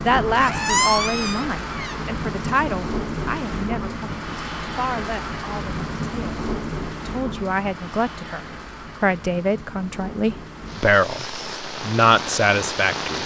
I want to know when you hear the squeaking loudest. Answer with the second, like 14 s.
1 s.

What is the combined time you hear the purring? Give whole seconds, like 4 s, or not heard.
not heard.